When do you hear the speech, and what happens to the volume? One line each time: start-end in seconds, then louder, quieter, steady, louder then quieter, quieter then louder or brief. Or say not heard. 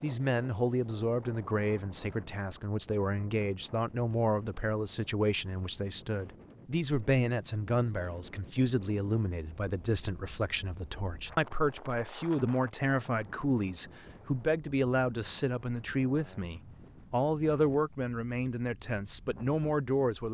0.0-20.2 steady.